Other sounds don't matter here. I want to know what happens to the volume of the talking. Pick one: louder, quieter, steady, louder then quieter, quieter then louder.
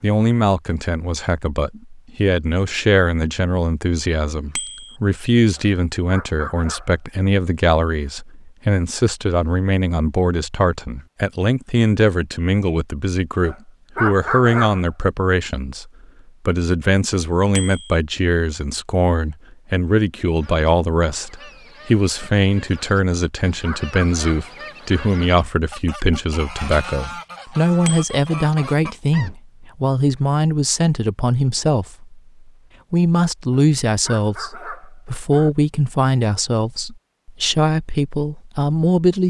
steady.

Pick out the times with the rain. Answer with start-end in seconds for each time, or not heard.
not heard.